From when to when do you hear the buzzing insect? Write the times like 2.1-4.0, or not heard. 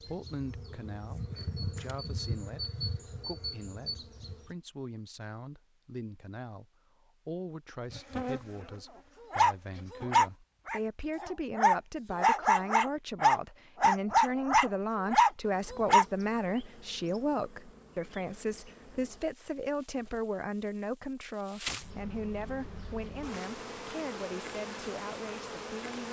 0.0-4.5, 7.8-10.3, 15.4-26.0.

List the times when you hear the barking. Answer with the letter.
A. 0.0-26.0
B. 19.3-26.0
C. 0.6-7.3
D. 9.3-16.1
D.